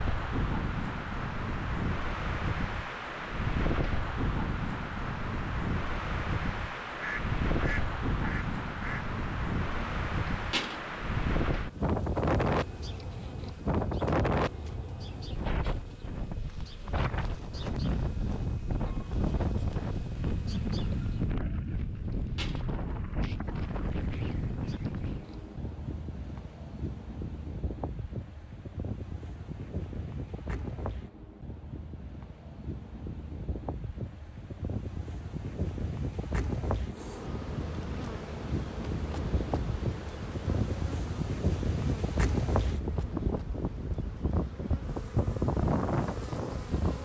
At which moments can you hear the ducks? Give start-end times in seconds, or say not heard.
7.0-9.1.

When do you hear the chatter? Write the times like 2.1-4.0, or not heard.
not heard.